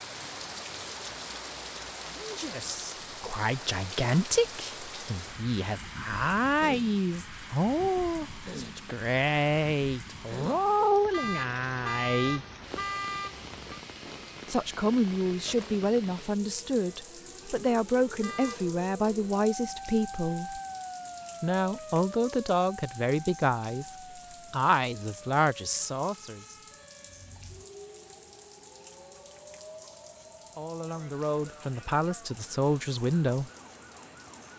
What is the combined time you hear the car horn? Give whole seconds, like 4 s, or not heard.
3 s.